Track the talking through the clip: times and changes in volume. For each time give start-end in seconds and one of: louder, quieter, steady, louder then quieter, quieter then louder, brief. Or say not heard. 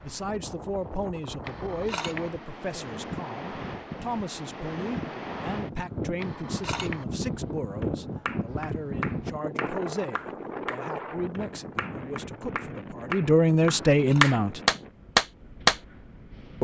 0.0-14.6 louder.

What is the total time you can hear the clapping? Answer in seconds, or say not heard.
8 s.